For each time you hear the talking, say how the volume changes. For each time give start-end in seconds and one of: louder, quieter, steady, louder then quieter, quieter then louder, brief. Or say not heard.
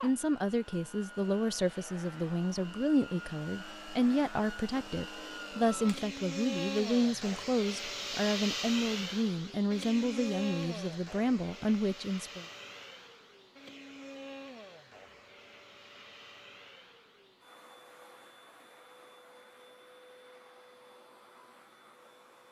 0.0-12.4 steady.